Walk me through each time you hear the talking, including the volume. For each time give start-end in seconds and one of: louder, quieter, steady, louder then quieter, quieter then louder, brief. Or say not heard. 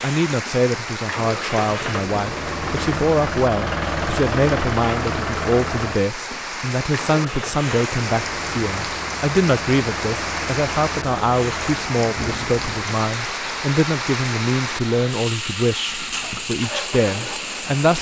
0.0-17.9 steady.